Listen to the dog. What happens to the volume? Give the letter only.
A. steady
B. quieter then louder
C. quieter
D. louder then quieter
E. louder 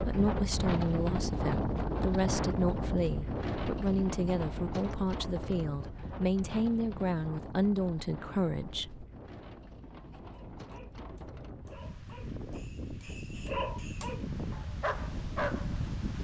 E.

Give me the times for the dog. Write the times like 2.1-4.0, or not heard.
9.9-15.8.